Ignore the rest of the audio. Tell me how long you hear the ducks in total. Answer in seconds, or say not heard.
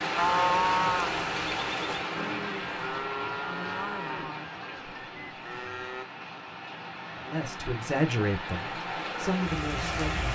not heard.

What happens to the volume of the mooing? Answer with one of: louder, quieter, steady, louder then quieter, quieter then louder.
quieter.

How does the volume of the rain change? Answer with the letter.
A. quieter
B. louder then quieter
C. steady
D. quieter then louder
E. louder
D.